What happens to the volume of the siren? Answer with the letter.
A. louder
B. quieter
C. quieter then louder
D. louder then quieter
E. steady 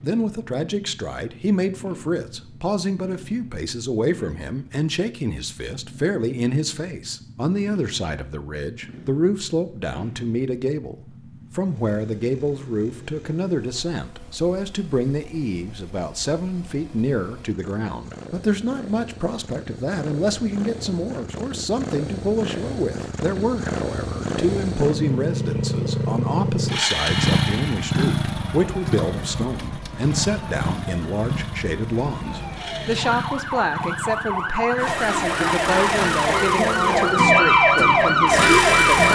A.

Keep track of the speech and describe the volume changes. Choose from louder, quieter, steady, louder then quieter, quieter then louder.
steady.